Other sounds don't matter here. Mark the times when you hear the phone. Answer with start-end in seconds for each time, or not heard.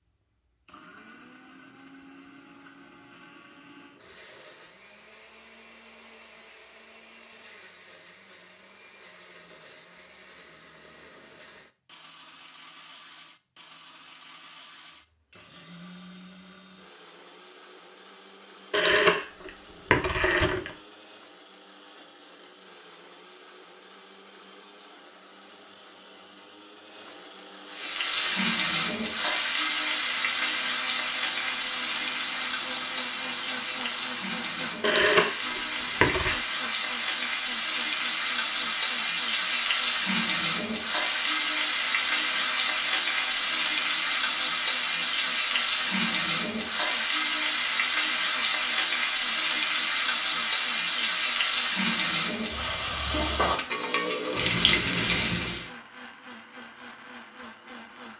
18.7-20.7, 34.8-36.4.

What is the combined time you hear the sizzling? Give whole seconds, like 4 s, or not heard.
28 s.